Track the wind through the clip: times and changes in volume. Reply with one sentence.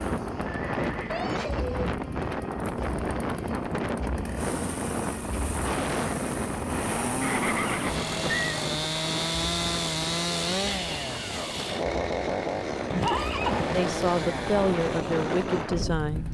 You can hear the wind from 0.0 to 16.3 s, getting quieter then louder.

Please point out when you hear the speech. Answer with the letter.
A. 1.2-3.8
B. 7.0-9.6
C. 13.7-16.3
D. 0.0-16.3
C.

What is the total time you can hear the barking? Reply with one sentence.
The barking can't be heard in this clip.